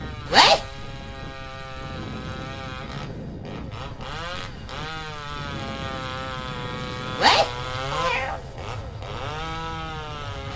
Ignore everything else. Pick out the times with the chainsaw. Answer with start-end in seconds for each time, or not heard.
0.0-10.5.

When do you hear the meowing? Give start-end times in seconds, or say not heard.
0.2-0.7, 7.2-8.8.